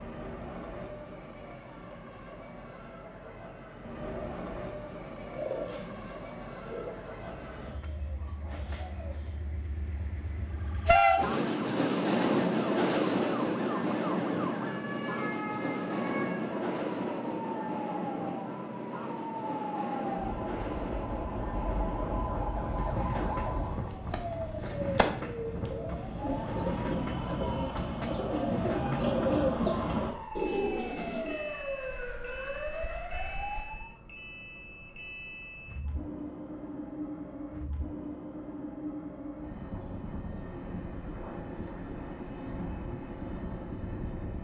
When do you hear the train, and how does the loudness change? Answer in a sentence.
The train can be heard from 0.0 to 44.3 s, getting louder then quieter.